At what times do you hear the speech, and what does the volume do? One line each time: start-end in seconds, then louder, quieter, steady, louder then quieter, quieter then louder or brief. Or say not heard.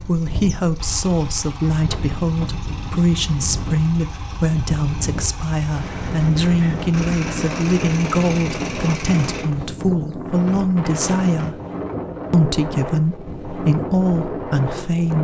0.0-11.6 steady
12.3-15.1 brief.